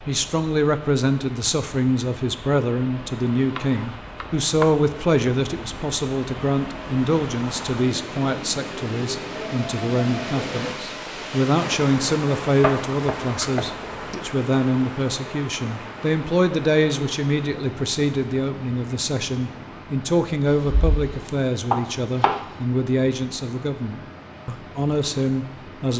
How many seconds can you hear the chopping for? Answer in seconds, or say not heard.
5 s.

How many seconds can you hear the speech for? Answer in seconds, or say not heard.
26 s.